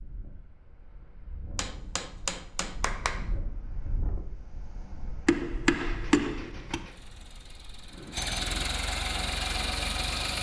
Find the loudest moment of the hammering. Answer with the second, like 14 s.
6 s.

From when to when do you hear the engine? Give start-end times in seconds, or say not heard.
5.8-10.3.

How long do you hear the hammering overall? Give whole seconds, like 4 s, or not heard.
3 s.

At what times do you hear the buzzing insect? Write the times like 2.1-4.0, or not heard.
not heard.